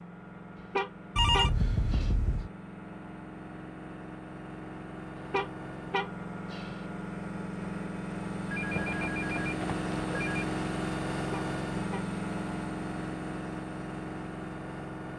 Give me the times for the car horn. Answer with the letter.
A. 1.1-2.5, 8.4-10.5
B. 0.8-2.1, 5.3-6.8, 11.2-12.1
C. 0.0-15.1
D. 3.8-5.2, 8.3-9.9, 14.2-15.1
B.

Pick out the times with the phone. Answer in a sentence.
The phone can be heard from 1.1 to 2.5 s and from 8.4 to 10.5 s.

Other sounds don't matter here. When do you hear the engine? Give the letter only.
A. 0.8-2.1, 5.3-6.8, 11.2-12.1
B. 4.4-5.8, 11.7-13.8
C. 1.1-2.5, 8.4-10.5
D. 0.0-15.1
D.